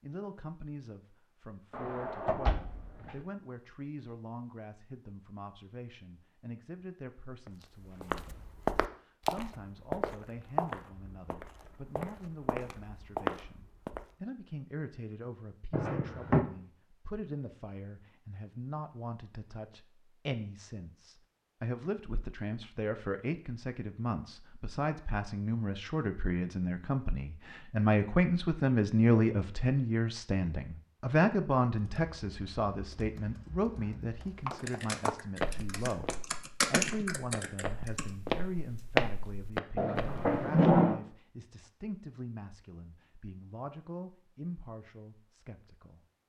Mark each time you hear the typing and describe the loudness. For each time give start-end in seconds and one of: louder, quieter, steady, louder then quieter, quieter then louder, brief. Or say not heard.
31.8-38.1 louder.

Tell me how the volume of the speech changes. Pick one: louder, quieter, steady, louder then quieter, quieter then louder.
louder then quieter.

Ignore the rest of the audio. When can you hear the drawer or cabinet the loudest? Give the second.
41 s.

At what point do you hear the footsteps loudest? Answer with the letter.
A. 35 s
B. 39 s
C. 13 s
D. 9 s
B.